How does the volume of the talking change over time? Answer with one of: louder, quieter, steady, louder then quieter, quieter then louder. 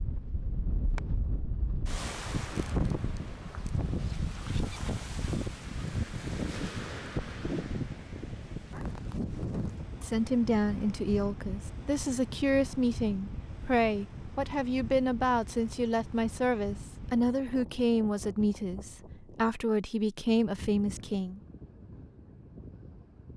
steady.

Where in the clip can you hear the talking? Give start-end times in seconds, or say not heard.
9.9-21.4.